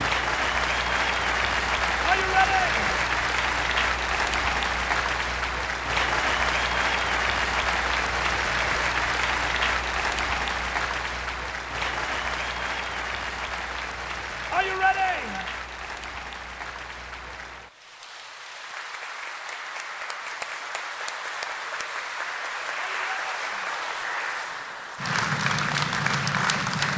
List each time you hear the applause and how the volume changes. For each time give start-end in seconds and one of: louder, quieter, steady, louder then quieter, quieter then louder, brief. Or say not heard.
0.0-26.9 quieter then louder.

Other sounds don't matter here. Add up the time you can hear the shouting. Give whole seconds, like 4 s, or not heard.
3 s.